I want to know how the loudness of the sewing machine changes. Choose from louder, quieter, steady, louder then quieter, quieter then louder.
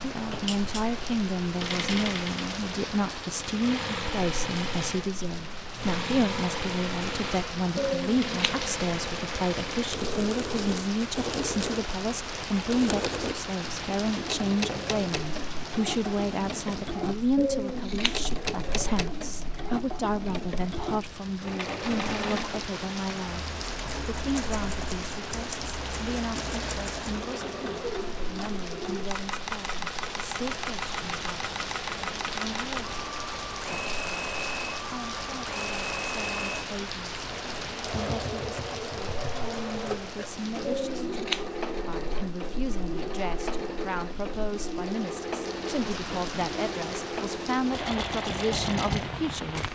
steady.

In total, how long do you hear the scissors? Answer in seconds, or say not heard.
3 s.